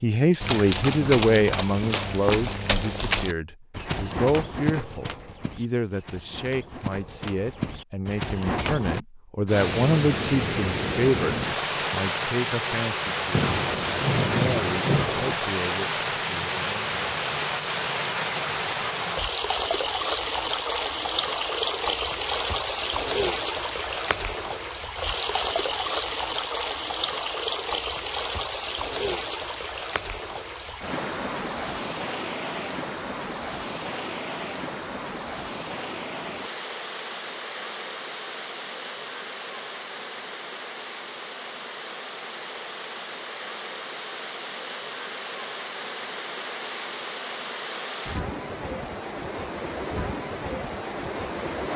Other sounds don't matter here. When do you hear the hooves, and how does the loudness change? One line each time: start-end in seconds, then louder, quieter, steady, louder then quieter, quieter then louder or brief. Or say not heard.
0.4-9.1 quieter then louder.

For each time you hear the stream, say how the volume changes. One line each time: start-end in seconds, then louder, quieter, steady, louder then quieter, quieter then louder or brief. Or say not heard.
9.4-51.7 quieter.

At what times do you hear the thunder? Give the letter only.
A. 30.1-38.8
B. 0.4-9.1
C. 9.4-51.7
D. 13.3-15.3
D.